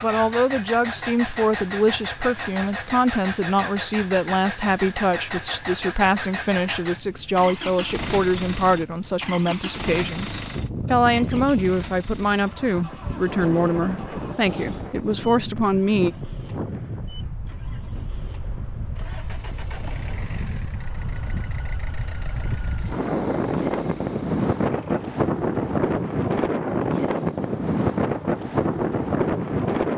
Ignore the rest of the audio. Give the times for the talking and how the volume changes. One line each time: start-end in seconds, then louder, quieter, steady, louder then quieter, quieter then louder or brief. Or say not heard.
0.0-16.1 steady.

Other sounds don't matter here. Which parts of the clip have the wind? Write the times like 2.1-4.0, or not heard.
10.5-29.9.